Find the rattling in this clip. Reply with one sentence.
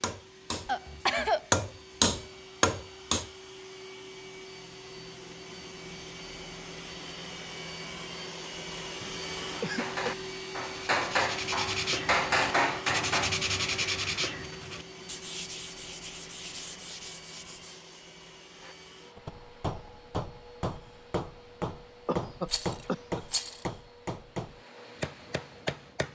You can hear the rattling from 22.4 to 23.6 s.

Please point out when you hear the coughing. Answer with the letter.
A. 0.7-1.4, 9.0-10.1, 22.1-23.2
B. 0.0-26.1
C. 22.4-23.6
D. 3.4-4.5
A.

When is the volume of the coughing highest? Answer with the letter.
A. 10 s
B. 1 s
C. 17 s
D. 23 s
B.